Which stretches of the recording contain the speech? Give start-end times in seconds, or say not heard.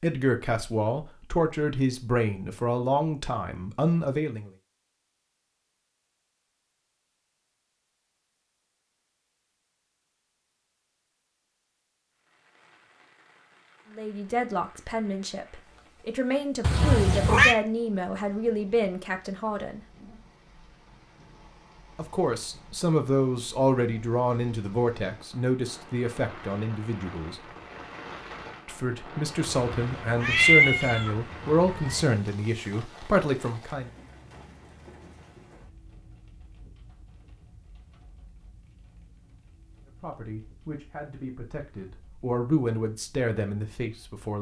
0.0-4.5, 13.9-19.8, 21.9-27.4, 28.6-33.9, 40.0-44.3.